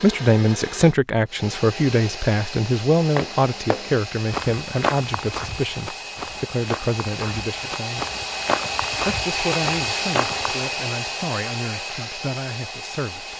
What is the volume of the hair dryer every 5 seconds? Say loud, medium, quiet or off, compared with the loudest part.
medium, loud, loud.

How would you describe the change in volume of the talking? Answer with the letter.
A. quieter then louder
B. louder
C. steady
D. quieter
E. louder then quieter
D.